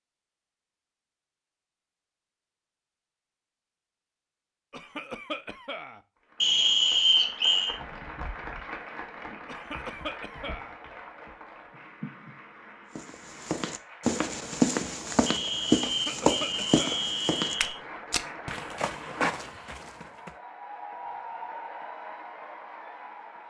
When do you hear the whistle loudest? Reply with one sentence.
The loudest moment of the whistle is at 7 seconds.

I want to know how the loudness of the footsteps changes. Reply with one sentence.
The volume of the footsteps goes down.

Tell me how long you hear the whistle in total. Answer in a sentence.
The whistle can be heard for 4 seconds in total.